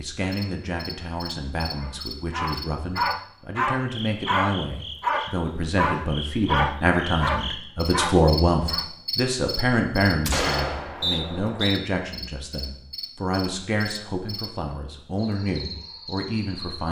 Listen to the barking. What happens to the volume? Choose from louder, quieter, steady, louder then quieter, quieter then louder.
steady.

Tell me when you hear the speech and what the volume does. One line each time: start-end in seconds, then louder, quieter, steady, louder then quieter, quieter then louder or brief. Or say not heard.
0.0-16.8 louder then quieter.